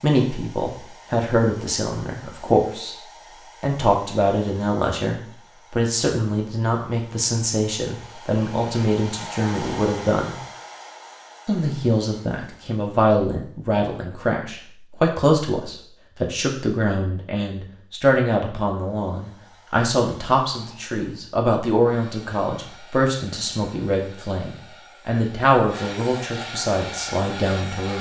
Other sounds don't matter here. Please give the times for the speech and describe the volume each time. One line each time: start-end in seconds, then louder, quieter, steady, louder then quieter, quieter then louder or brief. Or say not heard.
0.0-3.0 brief
3.6-10.3 steady
11.4-27.9 steady.